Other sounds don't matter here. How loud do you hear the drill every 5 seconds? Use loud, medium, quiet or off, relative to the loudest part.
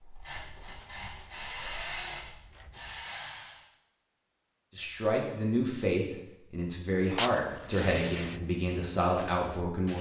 loud, off.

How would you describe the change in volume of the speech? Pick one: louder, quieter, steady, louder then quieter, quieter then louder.
quieter then louder.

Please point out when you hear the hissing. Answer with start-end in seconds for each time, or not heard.
7.0-9.9.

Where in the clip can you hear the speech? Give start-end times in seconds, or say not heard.
4.8-9.9.